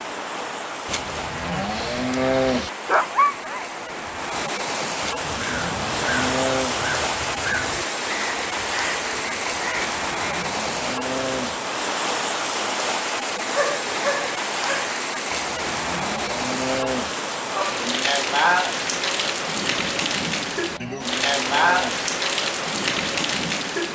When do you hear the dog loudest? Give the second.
3 s.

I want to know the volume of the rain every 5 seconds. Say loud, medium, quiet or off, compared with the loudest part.
medium, loud, loud, loud, loud.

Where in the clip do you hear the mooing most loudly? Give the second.
2 s.